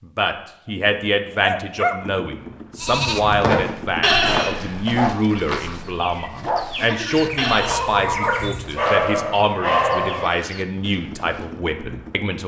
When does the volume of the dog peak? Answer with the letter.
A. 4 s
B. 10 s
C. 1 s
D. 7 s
B.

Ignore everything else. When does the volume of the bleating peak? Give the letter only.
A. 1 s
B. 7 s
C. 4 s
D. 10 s
C.